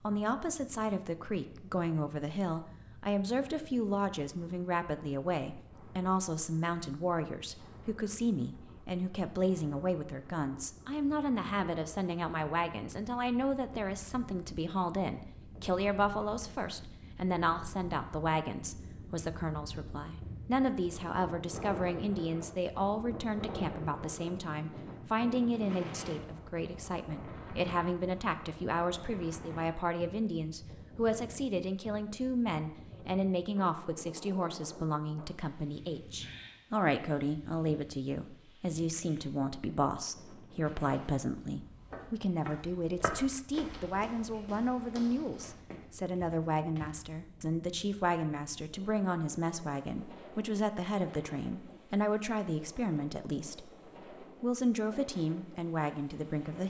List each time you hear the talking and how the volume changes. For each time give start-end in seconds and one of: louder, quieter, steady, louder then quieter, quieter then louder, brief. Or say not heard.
0.0-56.6 steady.